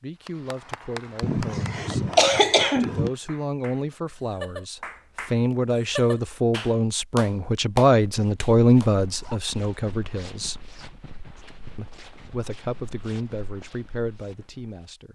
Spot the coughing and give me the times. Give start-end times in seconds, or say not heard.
1.2-3.1.